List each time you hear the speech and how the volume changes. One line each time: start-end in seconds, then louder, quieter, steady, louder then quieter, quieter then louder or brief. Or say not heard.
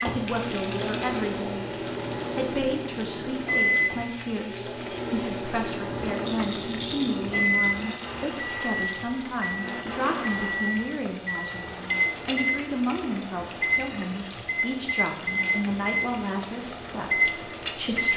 0.0-1.7 brief
2.4-18.1 steady.